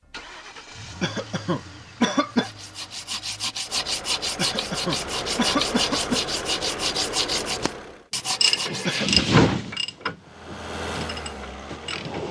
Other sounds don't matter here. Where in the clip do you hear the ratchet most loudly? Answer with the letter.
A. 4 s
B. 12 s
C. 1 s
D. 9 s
D.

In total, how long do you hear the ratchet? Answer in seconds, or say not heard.
4 s.